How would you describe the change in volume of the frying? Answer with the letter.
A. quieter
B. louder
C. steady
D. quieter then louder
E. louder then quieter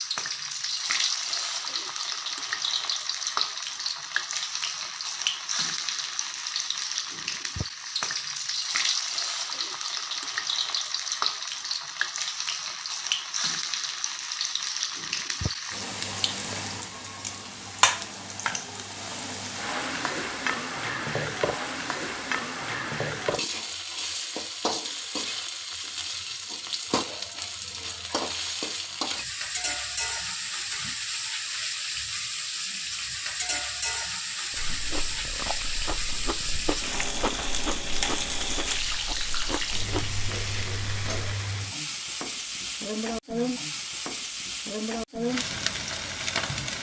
C.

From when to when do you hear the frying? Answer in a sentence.
You can hear the frying from 0.0 to 46.7 s.